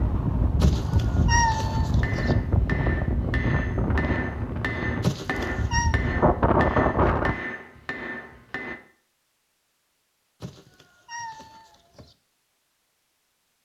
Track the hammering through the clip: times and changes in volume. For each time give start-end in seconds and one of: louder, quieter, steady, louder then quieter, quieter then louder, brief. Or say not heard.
2.0-8.8 steady.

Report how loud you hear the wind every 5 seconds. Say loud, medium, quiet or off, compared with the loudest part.
loud, loud, off.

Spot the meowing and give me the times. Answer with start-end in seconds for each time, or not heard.
0.6-2.4, 5.0-6.0, 10.4-12.2.